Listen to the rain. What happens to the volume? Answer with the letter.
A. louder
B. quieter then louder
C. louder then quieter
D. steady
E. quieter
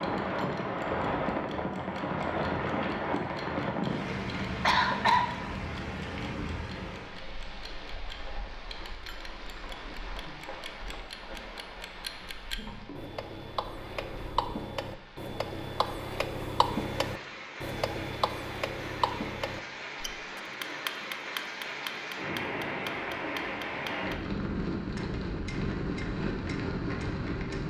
B.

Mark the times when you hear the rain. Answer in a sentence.
The rain can be heard from 0.0 to 27.6 s.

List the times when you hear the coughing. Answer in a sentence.
The coughing can be heard from 4.3 to 5.2 s.